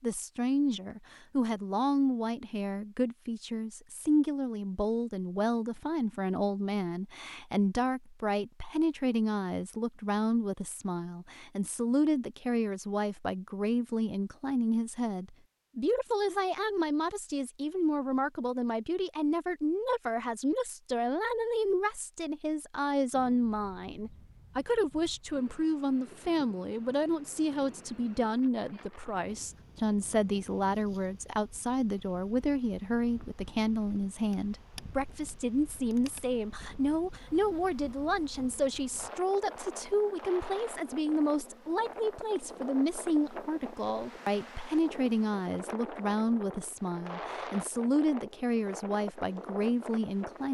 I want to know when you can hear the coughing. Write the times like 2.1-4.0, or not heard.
not heard.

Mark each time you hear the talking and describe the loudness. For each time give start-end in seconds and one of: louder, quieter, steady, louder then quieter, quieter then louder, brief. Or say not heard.
0.0-50.5 steady.